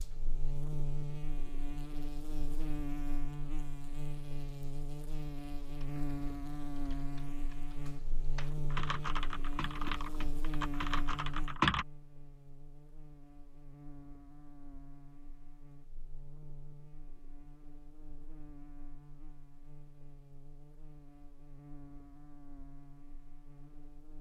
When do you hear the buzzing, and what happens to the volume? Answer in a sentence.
You can hear the buzzing from 0.0 to 24.1 s, getting quieter.